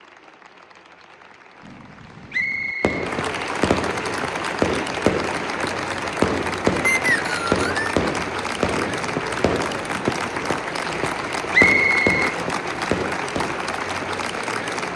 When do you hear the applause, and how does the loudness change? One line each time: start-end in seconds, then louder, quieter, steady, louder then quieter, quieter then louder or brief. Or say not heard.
0.0-14.9 louder.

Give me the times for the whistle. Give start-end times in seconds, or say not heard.
2.3-3.0, 6.8-8.0, 11.5-12.2.